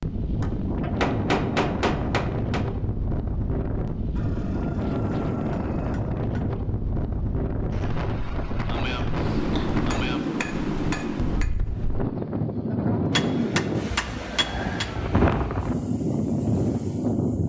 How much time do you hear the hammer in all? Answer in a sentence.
The hammer can be heard for 8 seconds in total.